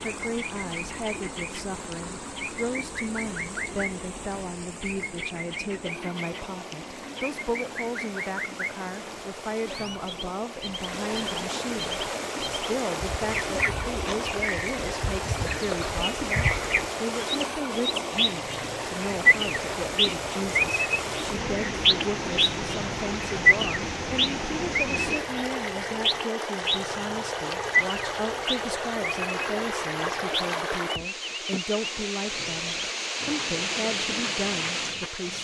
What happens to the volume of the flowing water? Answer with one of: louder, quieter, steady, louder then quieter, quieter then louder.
louder.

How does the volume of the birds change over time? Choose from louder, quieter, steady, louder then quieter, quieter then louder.
louder then quieter.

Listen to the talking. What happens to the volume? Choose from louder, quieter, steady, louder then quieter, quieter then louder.
steady.